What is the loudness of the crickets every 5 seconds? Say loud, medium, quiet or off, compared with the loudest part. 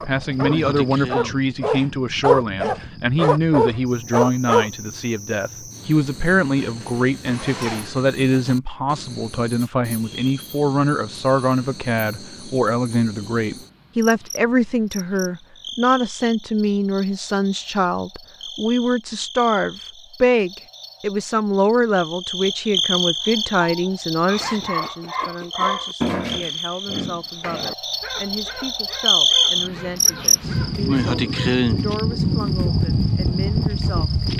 quiet, quiet, quiet, quiet, medium, loud, loud.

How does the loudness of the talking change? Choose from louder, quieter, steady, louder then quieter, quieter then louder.
quieter.